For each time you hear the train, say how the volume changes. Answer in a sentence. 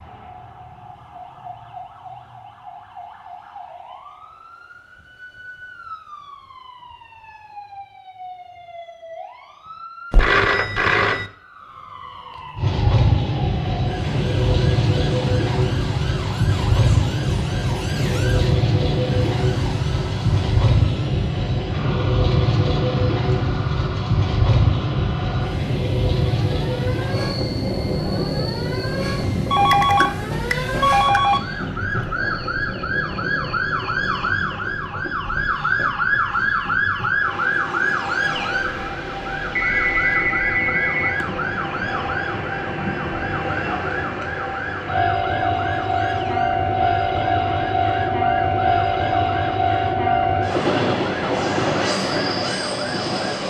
You can hear the train from 12.6 to 53.4 s, getting quieter then louder.